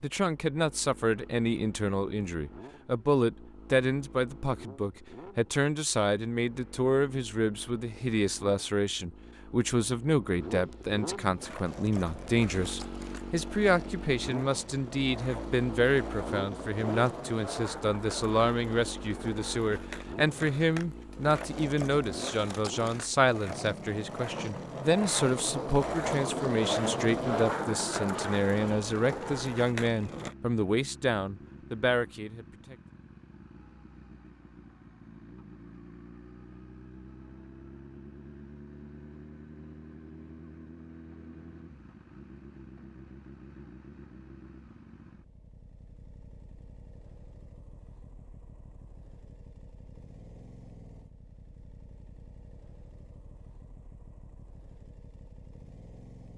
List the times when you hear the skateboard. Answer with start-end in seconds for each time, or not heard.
11.3-30.4.